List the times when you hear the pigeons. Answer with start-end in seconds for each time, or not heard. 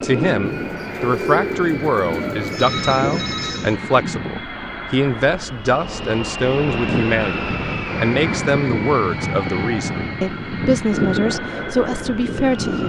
0.4-2.5.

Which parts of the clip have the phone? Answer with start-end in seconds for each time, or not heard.
2.5-3.8.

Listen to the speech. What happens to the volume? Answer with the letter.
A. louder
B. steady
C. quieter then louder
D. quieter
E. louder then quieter
B.